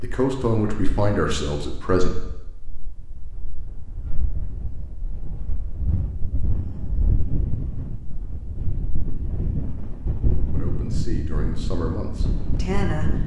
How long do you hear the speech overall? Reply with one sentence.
You can hear the speech for 5 seconds altogether.